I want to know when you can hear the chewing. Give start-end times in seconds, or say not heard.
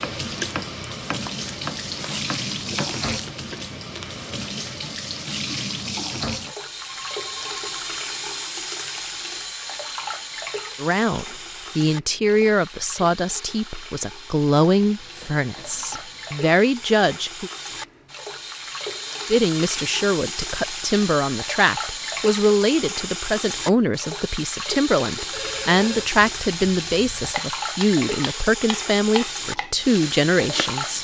0.2-4.3.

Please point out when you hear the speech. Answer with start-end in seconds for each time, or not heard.
10.8-17.5, 19.3-31.0.